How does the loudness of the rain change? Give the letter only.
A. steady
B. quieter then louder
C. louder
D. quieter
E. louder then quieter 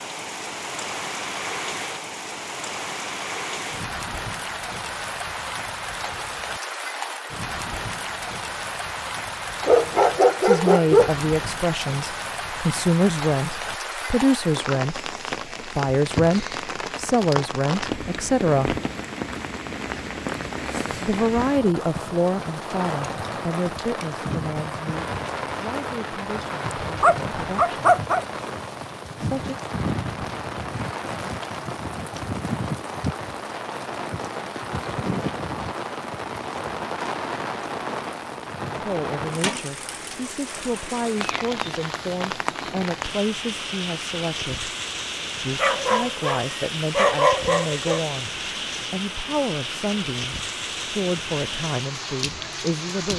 A.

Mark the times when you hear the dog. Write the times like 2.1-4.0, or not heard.
9.6-11.2, 27.0-28.2, 45.5-48.0.